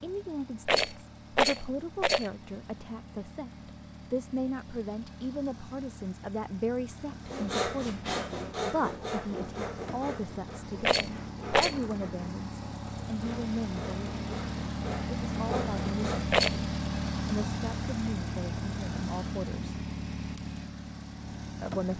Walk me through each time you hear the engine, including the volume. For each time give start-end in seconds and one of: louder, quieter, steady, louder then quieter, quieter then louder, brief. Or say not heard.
0.0-21.9 louder.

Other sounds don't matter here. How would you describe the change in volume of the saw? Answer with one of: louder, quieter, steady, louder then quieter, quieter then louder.
quieter then louder.